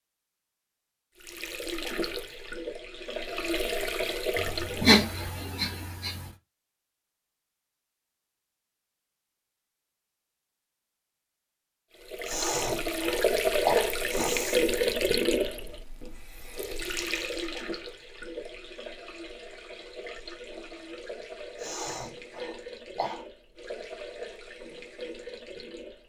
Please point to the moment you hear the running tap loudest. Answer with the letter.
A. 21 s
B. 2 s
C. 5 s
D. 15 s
D.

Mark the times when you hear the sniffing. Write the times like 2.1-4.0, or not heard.
4.3-6.3, 12.2-14.7, 21.6-23.2.